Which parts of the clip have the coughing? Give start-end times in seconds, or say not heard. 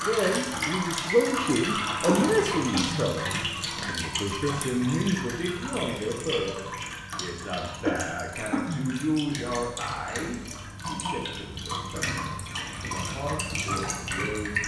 2.0-3.0, 7.8-8.8.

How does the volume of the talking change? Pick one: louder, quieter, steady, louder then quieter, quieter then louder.
quieter.